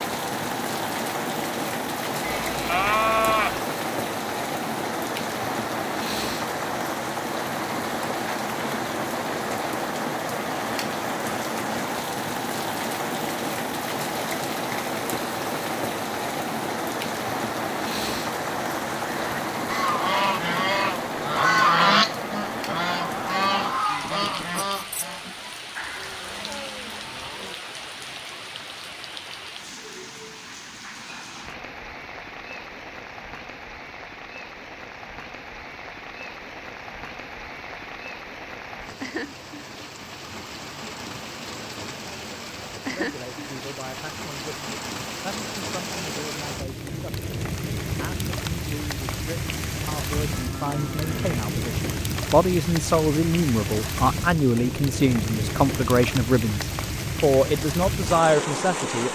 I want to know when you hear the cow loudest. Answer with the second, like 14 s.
3 s.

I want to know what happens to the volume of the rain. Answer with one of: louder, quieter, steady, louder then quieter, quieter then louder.
quieter then louder.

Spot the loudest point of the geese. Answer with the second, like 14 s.
22 s.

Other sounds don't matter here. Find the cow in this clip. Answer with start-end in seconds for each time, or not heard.
2.4-3.6, 25.9-27.6, 50.2-51.5.